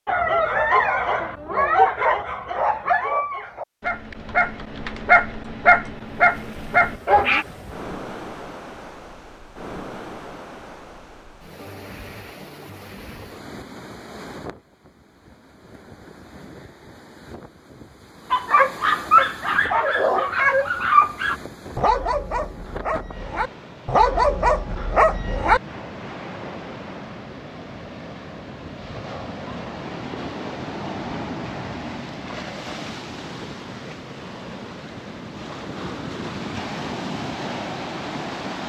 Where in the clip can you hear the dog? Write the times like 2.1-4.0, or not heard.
0.1-7.5, 18.3-25.6.